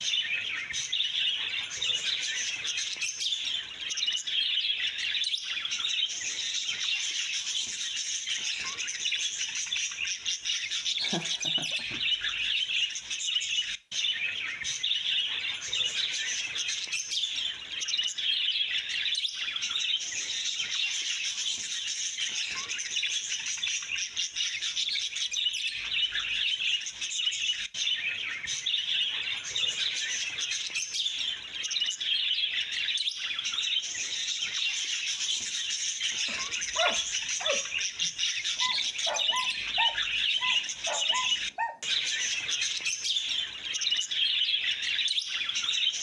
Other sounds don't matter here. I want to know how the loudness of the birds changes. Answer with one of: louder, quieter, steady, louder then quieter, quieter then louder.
steady.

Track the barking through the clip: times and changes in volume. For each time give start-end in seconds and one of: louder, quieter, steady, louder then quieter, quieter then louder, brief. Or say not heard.
36.2-41.8 quieter then louder.